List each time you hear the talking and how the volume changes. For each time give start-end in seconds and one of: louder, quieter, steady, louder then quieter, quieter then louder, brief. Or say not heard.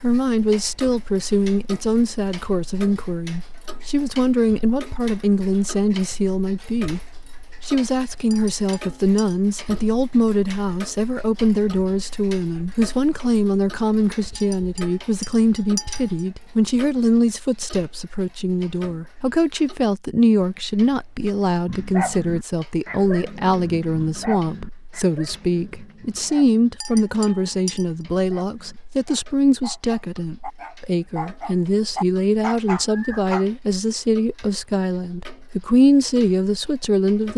0.0-37.3 steady.